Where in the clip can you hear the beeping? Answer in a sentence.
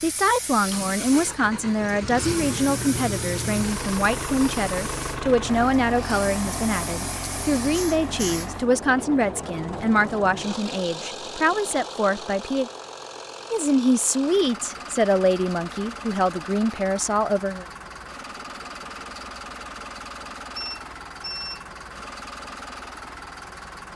You can hear the beeping from 20.6 to 21.6 s.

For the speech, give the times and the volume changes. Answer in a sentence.
You can hear the speech from 0.0 to 12.7 s, at a steady volume; and from 13.5 to 17.6 s, at a steady volume.